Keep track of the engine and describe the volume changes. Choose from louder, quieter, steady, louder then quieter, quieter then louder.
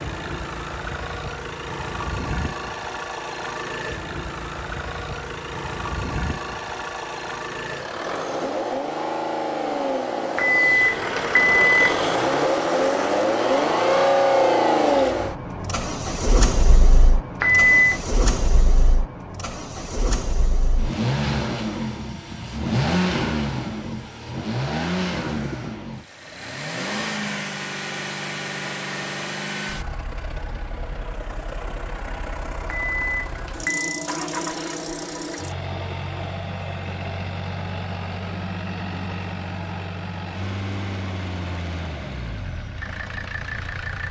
louder then quieter.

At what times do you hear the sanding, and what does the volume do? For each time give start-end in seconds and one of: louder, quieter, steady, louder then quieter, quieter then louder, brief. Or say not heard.
not heard.